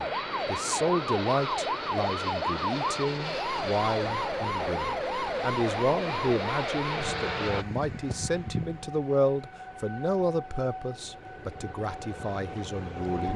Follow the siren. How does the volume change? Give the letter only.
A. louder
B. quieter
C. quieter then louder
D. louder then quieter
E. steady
B.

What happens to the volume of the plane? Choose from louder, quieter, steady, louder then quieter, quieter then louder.
steady.